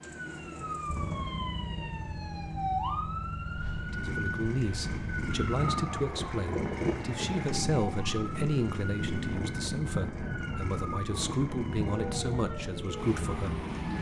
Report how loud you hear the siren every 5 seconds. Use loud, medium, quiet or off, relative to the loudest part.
loud, loud, medium.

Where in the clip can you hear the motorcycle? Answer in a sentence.
You can hear the motorcycle from 0.0 to 13.9 s.